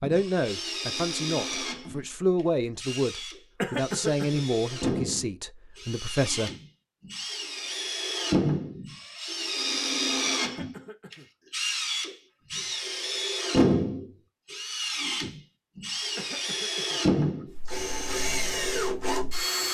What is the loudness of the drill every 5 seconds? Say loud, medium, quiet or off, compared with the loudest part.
medium, loud, loud, loud.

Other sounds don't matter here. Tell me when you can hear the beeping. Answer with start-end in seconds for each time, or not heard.
not heard.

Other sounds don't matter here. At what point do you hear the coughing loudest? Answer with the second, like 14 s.
4 s.